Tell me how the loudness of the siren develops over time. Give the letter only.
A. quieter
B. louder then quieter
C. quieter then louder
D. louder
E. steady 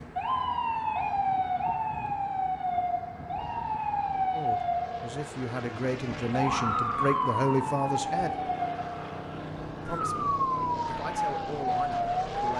E.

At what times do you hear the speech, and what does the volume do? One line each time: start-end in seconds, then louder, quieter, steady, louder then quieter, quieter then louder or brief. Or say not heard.
4.3-8.3 louder
9.8-12.5 brief.